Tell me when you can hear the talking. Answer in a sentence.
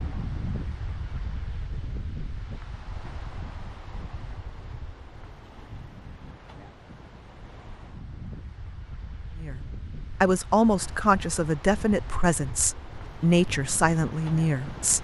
You can hear the talking from 9.4 to 14.9 s.